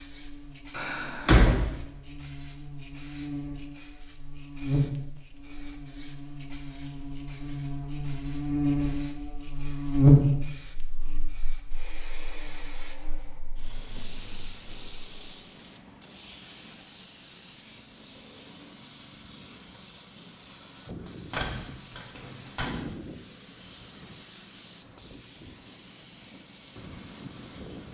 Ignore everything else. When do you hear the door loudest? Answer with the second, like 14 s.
1 s.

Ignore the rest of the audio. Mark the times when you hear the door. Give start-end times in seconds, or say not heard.
0.7-1.6, 21.3-22.9.